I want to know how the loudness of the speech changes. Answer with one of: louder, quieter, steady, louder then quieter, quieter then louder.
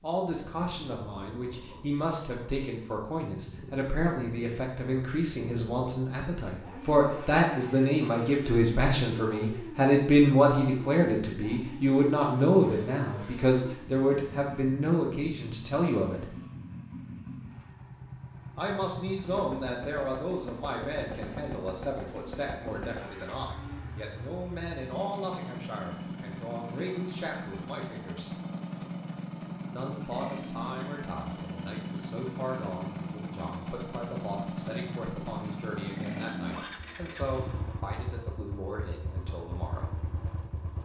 louder then quieter.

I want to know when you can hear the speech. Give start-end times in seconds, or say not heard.
0.0-16.3, 18.6-28.4, 29.7-40.0.